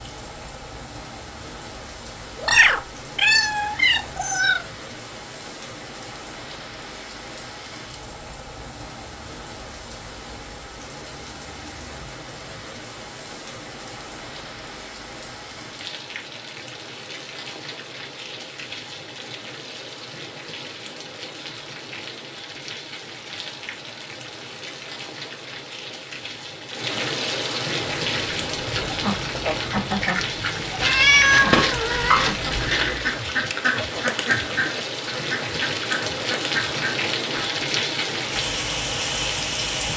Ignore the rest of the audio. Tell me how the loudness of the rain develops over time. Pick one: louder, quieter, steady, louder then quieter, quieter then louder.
louder.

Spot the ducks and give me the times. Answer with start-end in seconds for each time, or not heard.
28.0-37.5.